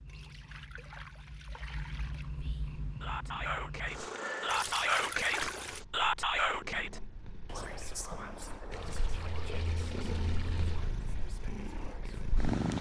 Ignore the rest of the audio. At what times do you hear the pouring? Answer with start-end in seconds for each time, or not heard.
0.1-2.3, 4.5-5.8, 8.7-10.9.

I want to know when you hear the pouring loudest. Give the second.
5 s.